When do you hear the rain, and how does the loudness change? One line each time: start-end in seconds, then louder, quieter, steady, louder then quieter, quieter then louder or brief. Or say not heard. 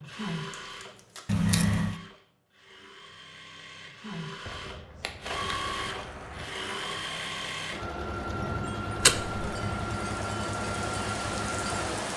5.3-12.1 louder.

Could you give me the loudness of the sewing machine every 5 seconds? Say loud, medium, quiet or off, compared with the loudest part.
medium, loud, loud.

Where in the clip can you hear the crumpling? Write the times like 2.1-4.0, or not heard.
0.6-1.2.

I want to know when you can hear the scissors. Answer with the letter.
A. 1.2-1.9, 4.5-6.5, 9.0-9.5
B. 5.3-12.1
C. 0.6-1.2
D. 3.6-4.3
A.